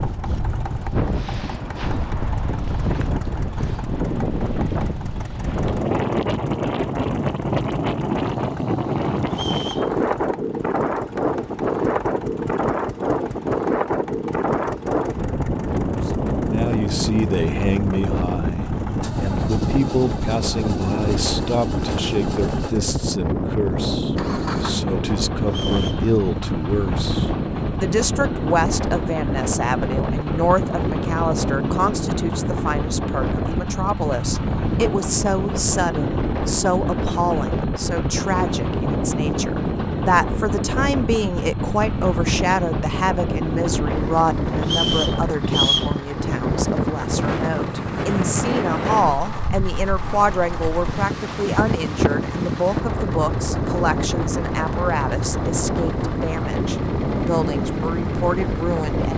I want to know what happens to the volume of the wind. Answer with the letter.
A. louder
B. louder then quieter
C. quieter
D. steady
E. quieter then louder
D.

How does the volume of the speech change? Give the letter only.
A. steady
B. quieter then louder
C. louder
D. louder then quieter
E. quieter
A.